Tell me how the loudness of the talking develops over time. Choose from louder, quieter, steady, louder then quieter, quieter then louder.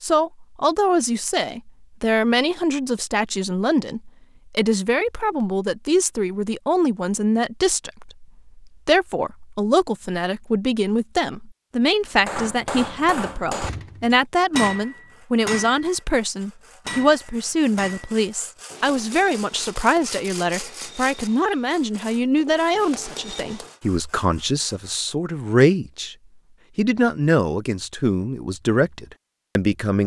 steady.